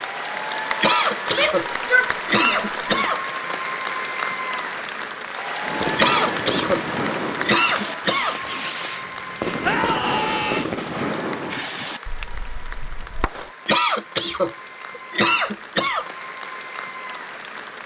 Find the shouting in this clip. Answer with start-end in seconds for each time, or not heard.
1.3-3.1, 9.6-10.7.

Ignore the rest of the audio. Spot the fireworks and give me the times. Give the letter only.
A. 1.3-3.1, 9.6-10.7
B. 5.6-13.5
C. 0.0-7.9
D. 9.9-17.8
B.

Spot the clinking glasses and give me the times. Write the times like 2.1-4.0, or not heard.
not heard.